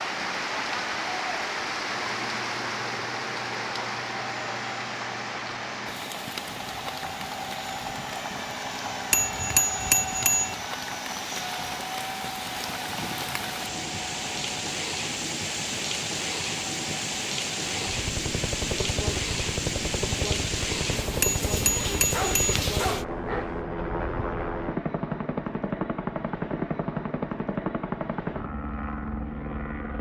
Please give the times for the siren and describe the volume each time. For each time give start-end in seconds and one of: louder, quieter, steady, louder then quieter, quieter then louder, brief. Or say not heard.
not heard.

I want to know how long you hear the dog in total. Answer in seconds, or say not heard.
2 s.